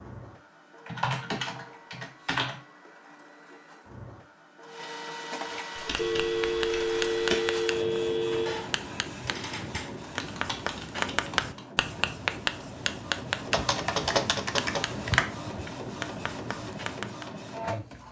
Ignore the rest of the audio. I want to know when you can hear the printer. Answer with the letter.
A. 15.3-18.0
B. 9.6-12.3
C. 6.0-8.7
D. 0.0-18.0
D.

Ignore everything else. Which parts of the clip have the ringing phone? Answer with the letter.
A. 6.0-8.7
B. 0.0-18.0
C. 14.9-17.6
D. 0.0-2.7
A.